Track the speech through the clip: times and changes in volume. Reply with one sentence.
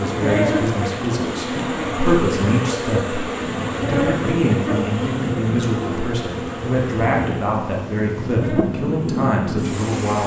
You can hear the speech from 0.0 to 10.2 s, at a steady volume.